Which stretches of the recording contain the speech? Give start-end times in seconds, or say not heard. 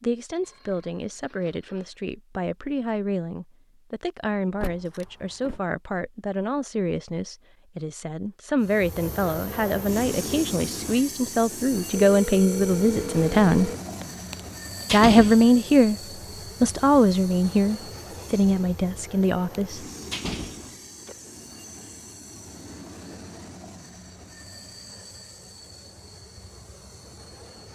0.0-13.7, 14.9-15.9, 16.6-19.9.